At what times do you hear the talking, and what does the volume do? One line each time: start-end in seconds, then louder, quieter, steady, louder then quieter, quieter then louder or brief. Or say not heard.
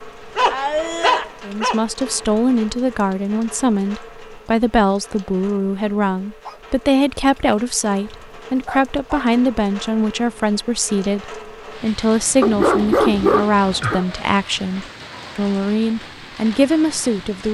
1.4-17.4 steady.